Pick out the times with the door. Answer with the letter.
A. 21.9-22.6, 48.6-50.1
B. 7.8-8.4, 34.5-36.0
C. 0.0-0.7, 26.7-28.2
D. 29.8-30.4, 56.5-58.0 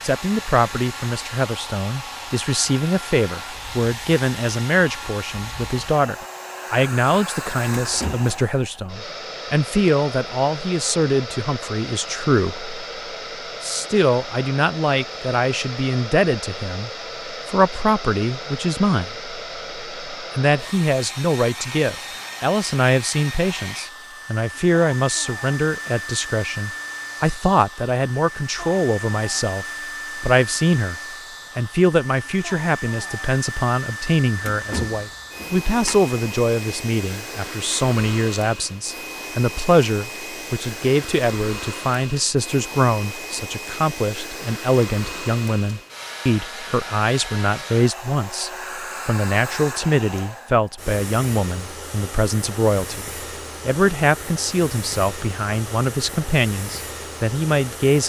B.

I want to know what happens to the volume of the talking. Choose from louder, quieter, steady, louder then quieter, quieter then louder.
steady.